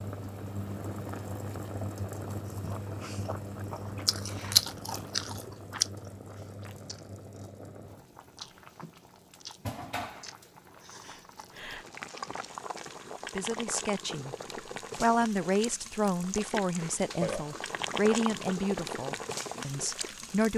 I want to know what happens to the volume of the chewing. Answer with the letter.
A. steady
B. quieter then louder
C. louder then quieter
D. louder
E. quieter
C.